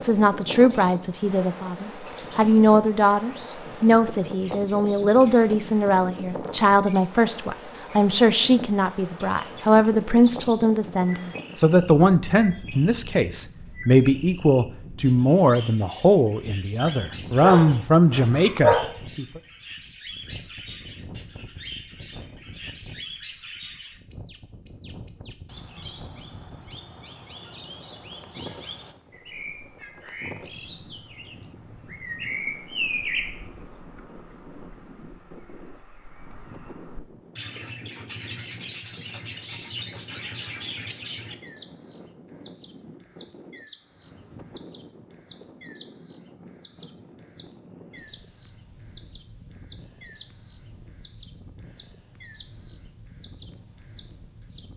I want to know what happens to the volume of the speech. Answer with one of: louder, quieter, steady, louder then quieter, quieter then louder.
steady.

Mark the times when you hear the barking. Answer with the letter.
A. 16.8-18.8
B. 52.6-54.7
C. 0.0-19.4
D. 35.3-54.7
A.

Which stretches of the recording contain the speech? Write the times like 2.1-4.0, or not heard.
0.0-19.4.